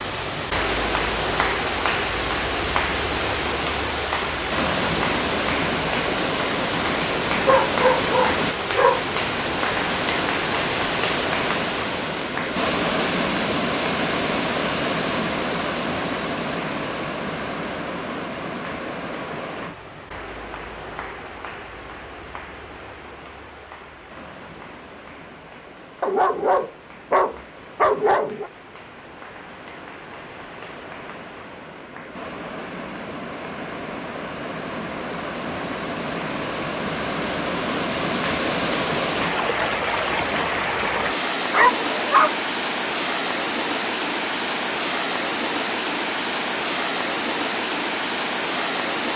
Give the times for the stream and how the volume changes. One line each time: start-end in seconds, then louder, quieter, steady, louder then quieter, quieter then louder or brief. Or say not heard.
0.0-49.1 quieter then louder.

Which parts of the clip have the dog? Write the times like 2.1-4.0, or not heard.
7.5-9.0, 26.0-28.5, 41.5-42.4.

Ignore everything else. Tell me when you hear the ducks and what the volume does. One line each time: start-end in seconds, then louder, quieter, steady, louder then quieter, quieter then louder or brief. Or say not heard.
not heard.